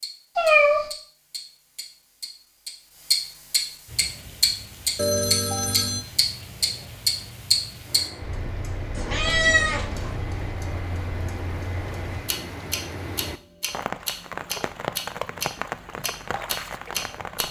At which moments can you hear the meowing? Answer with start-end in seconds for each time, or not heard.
0.3-0.8, 8.9-10.1.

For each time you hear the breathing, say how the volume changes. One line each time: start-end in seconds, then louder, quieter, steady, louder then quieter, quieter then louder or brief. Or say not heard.
not heard.